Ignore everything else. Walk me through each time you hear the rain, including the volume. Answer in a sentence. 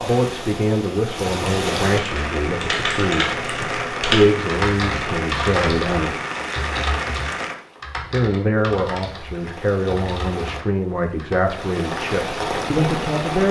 You can hear the rain from 0.0 to 13.4 s, getting quieter then louder.